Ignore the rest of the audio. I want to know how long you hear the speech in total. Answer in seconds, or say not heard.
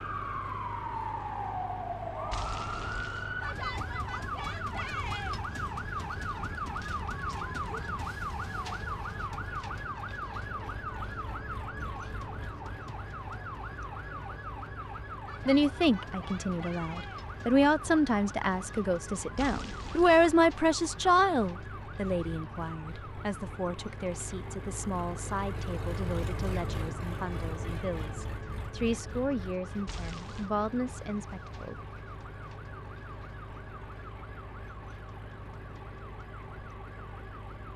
16 s.